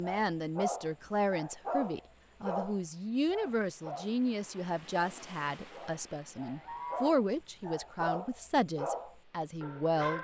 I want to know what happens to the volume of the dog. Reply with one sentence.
The loudness of the dog goes down, then up.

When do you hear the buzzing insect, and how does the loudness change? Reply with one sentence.
You can't hear the buzzing insect here.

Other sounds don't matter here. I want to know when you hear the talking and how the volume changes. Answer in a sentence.
You can hear the talking from 0.0 to 10.1 s, at a steady volume.